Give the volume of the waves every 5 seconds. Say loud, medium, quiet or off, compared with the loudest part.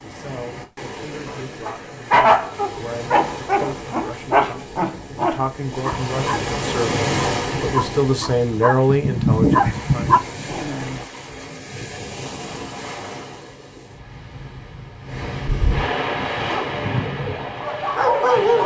medium, loud, medium, loud.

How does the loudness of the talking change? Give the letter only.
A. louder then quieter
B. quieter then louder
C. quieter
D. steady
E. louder
E.